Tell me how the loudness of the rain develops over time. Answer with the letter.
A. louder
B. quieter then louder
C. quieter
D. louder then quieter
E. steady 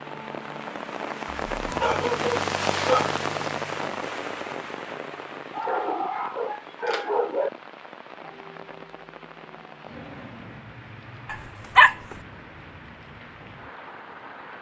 C.